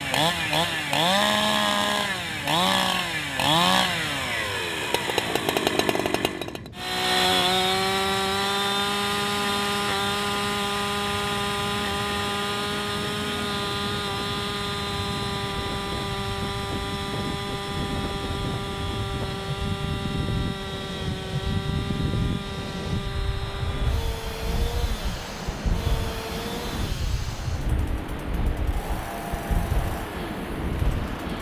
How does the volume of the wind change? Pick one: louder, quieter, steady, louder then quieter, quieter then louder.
louder.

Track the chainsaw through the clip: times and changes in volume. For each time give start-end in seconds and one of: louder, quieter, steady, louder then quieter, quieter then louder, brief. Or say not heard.
0.0-31.3 quieter.